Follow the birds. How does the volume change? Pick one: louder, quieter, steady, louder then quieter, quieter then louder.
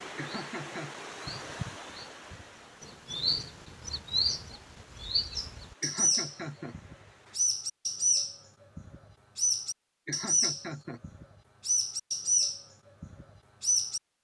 louder.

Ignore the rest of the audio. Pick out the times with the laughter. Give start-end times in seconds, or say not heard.
0.1-1.0, 5.8-6.8, 10.1-11.0.